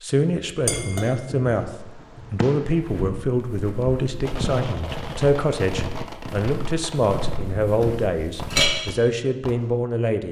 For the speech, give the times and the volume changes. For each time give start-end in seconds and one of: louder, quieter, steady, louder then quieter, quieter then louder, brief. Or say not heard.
0.0-10.2 steady.